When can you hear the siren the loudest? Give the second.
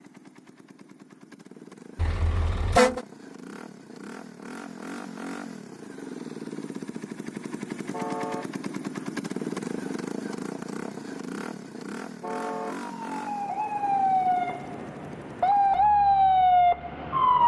16 s.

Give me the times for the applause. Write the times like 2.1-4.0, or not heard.
not heard.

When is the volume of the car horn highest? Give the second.
3 s.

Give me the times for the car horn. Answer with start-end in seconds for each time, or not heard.
1.9-3.0, 7.9-8.6, 12.2-12.8.